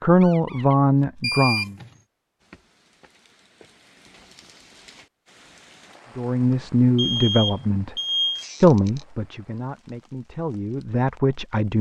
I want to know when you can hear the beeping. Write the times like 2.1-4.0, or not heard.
1.2-1.9, 6.5-8.4.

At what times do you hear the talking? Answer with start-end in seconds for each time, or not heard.
0.0-1.8, 6.2-8.0, 8.6-11.7.